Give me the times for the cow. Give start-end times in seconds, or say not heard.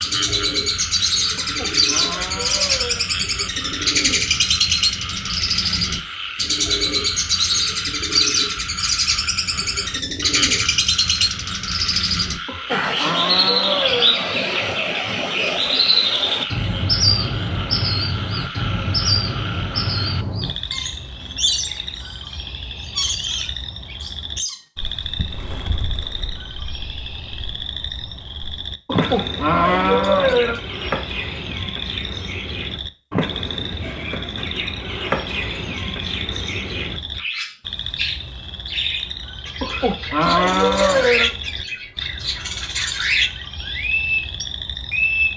1.4-3.2, 12.4-14.2, 28.9-30.6, 39.6-41.5.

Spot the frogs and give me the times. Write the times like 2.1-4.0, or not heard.
0.0-45.3.